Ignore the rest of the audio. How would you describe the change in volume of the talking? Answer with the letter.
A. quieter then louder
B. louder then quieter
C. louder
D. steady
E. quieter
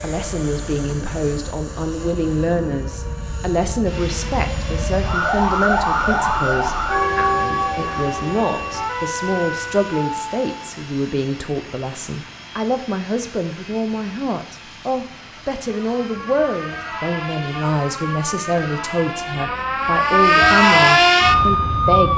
D.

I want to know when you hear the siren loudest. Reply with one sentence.
The volume of the siren peaks at 21 seconds.